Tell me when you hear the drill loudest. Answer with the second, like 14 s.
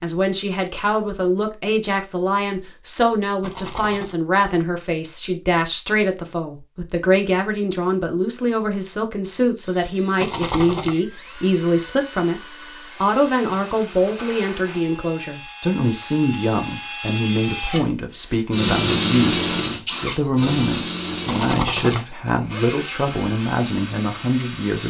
19 s.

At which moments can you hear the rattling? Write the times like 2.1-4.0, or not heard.
3.4-4.2, 10.2-10.9, 21.2-22.0.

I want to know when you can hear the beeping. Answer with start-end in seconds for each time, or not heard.
not heard.